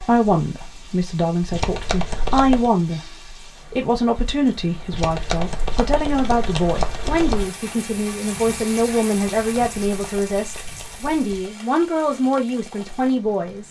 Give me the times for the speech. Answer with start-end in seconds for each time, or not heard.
0.0-3.0, 3.7-13.6.